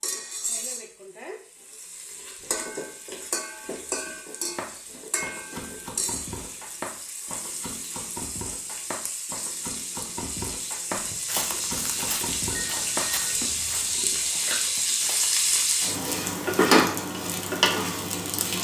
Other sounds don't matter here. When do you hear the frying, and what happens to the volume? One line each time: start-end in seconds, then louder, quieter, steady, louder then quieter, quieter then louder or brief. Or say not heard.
0.0-18.5 louder.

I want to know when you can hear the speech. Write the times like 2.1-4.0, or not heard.
not heard.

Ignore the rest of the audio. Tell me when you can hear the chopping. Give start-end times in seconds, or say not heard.
4.5-13.2.